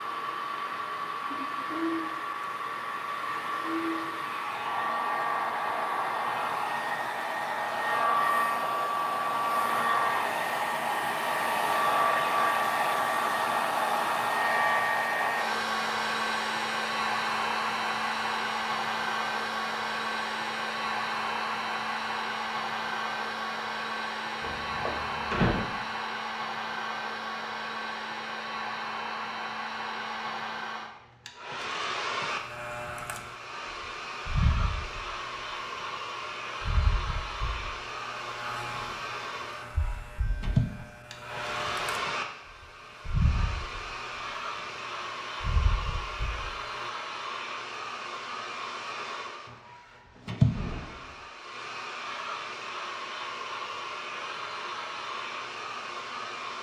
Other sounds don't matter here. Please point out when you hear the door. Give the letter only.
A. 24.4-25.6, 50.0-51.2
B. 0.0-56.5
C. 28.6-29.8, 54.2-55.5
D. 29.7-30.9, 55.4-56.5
A.